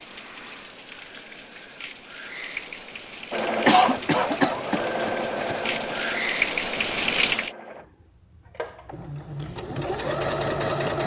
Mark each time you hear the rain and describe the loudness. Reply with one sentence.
The rain can be heard from 0.0 to 7.5 s, getting louder.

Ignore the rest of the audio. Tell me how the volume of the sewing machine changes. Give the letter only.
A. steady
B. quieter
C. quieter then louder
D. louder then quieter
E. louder
C.